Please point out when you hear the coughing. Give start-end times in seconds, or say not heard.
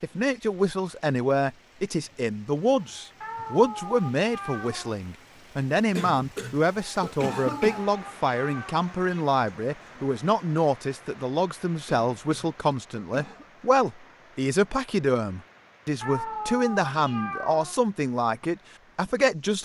6.0-7.9, 11.8-13.5.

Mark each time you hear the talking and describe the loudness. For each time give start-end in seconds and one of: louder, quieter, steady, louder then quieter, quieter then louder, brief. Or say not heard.
0.0-19.6 steady.